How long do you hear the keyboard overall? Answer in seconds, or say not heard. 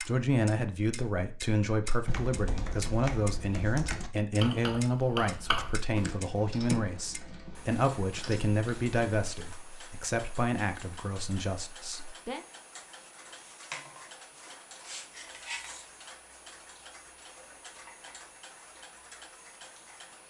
7 s.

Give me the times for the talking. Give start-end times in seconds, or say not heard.
0.0-12.4.